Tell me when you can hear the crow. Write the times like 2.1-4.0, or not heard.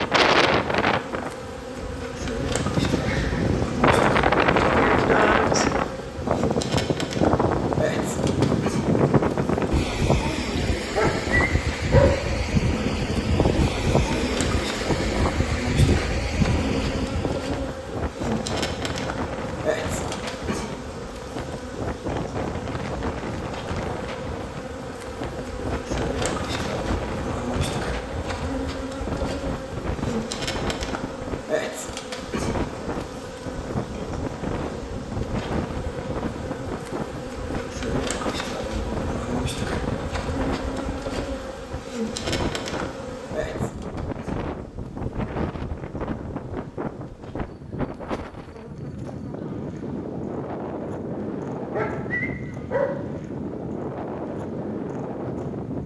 not heard.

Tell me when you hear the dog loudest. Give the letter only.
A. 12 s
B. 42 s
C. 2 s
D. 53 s
A.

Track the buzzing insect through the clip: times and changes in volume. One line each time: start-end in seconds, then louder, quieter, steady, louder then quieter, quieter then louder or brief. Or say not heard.
0.0-55.8 quieter.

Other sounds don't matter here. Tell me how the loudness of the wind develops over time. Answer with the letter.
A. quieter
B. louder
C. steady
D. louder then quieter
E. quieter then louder
A.